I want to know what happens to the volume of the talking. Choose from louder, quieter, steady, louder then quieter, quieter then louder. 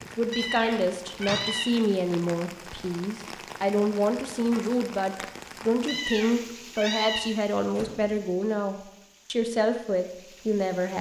steady.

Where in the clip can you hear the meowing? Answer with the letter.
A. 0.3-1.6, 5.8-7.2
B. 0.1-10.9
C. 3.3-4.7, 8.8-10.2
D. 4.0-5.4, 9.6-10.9
A.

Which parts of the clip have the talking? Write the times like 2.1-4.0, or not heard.
0.1-10.9.